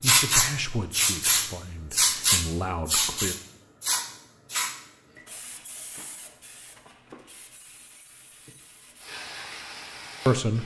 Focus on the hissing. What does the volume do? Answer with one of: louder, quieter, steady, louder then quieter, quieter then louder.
quieter then louder.